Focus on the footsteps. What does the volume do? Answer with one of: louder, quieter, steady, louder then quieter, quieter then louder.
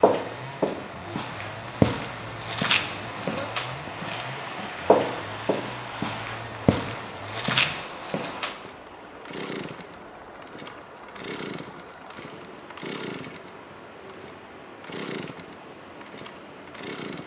quieter then louder.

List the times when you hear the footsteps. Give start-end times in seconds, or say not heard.
0.0-8.6.